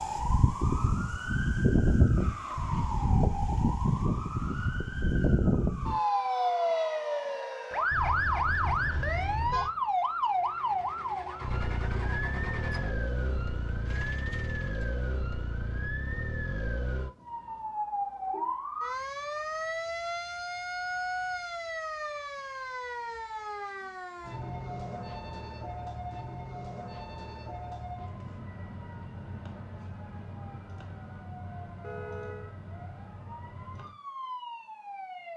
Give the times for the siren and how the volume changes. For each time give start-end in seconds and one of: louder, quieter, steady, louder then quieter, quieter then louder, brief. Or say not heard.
0.0-35.3 quieter.